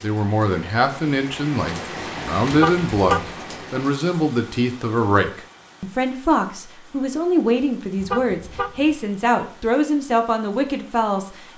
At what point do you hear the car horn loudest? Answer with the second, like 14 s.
3 s.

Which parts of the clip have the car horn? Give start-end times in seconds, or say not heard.
2.5-3.3, 8.0-8.9.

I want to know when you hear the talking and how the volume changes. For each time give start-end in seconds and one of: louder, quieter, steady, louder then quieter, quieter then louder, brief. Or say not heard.
0.0-11.4 steady.